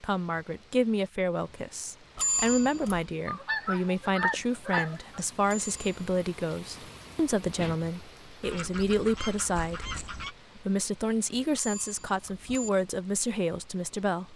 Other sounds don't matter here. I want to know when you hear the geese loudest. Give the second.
4 s.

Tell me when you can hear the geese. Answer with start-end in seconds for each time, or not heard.
3.2-5.2, 8.4-10.3.